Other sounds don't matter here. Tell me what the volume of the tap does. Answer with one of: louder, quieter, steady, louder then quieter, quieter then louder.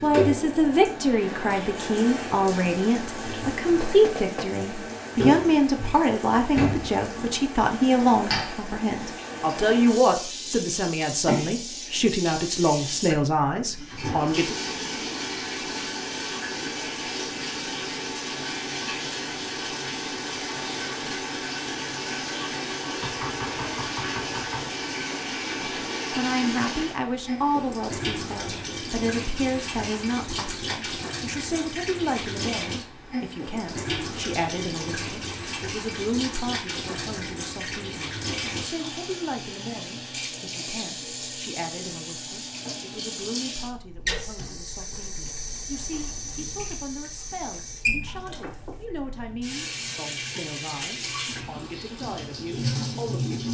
steady.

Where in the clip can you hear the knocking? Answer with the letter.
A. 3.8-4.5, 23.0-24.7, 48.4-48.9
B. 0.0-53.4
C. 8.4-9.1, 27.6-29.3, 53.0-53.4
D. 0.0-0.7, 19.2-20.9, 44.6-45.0
A.